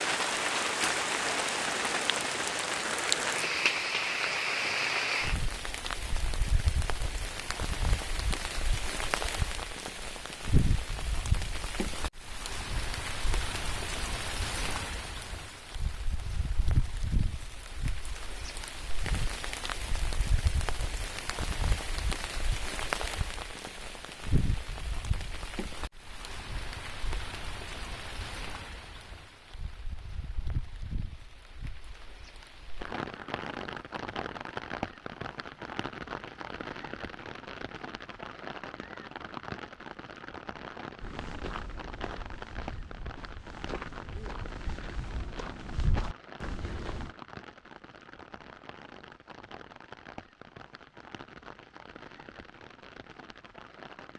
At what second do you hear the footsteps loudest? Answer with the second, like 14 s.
46 s.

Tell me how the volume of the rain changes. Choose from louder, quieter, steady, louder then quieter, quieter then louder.
quieter.